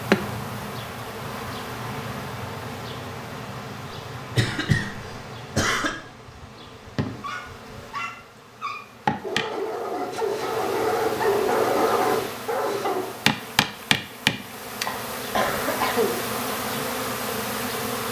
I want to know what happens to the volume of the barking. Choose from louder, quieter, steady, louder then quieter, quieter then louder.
louder.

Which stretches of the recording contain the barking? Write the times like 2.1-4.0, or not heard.
7.2-13.2.